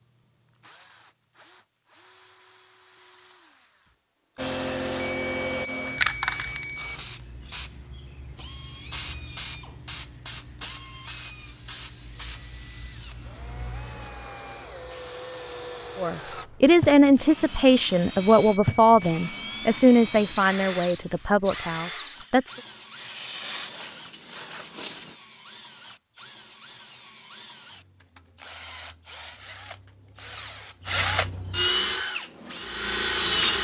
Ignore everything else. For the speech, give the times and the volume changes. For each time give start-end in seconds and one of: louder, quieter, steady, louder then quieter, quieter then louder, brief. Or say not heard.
15.9-22.6 quieter.